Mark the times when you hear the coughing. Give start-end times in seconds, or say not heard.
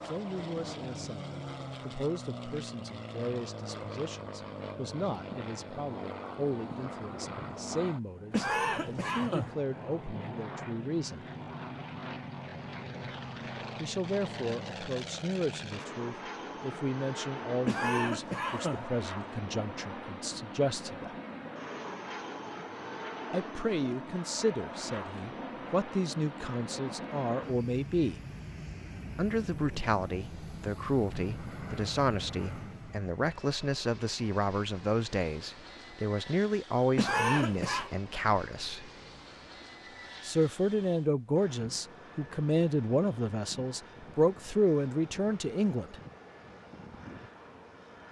8.3-9.6, 17.6-18.9, 37.0-37.9.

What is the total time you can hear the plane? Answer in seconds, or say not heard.
48 s.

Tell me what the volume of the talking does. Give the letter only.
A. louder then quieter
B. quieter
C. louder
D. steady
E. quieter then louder
C.